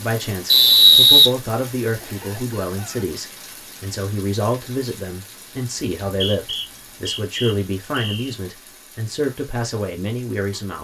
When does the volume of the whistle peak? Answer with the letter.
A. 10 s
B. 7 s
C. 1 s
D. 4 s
C.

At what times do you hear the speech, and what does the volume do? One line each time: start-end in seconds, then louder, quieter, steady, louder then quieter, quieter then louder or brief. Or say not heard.
0.0-10.7 steady.